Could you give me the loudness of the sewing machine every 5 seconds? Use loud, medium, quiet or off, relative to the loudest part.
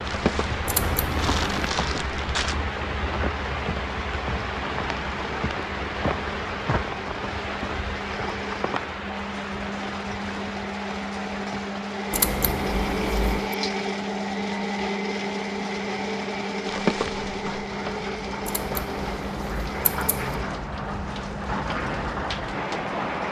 medium, medium, loud, loud, medium.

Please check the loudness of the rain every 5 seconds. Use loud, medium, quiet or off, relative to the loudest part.
loud, loud, medium, medium, loud.